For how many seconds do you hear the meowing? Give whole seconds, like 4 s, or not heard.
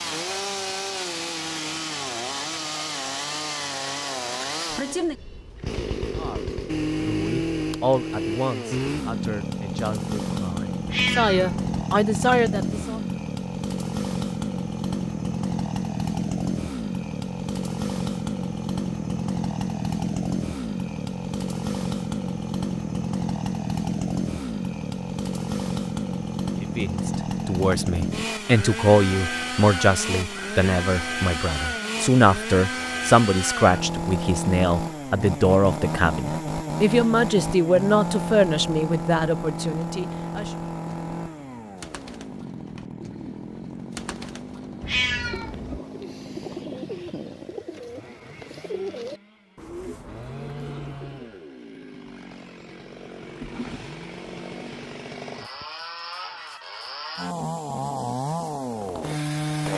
2 s.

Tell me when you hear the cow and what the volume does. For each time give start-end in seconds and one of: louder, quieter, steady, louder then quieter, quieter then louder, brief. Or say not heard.
not heard.